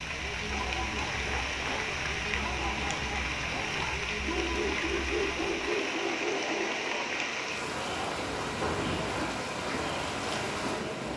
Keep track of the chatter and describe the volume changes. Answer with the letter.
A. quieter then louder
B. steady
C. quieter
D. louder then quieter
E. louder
B.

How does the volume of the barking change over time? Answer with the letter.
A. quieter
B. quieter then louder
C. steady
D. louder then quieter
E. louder
E.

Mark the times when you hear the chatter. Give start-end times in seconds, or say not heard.
0.0-11.1.